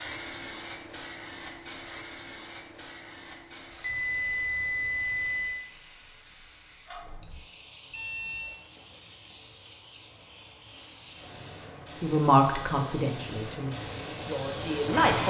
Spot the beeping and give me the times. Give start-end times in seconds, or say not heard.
3.8-5.6, 7.9-8.6.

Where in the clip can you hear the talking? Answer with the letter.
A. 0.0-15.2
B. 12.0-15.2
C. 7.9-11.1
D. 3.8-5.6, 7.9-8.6
B.